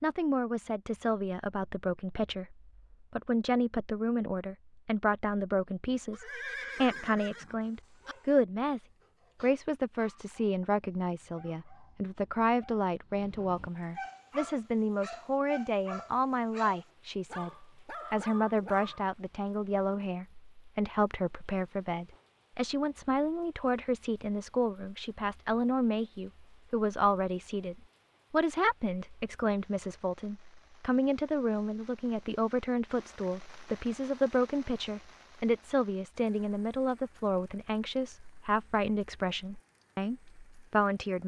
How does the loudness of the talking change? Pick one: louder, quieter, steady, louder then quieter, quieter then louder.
steady.